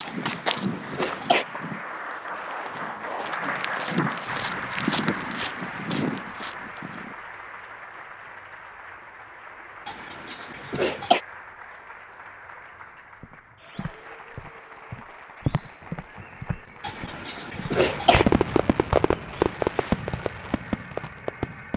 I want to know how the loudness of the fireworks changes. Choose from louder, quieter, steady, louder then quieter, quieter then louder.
quieter.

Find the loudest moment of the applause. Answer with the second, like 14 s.
4 s.